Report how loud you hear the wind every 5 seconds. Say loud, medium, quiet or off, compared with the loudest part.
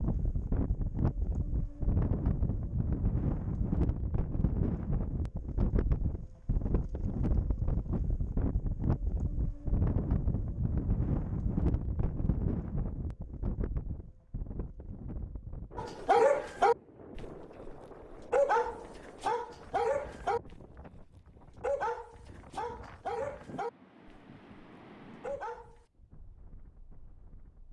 loud, loud, loud, quiet, quiet, quiet.